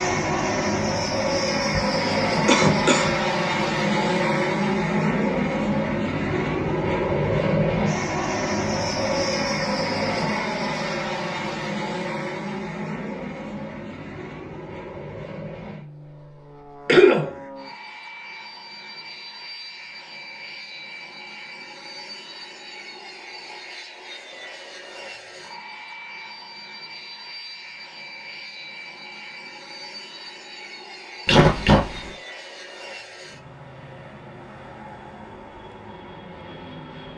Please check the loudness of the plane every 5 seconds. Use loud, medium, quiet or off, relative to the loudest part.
loud, loud, medium, quiet, quiet, quiet, quiet, quiet.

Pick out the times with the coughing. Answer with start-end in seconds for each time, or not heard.
1.8-3.1, 16.9-17.3, 31.2-32.1.